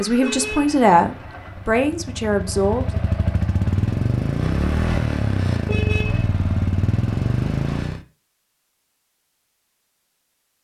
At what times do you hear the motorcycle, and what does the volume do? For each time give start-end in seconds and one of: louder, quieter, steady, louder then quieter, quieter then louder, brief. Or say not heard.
0.0-8.0 louder.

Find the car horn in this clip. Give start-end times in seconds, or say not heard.
0.1-0.8, 5.6-6.2.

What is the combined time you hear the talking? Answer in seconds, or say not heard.
3 s.